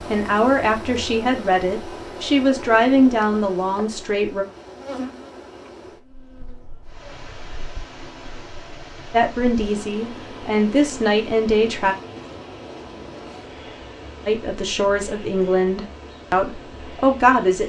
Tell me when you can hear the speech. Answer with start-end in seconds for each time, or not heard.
0.1-4.5, 9.1-11.9, 14.2-17.6.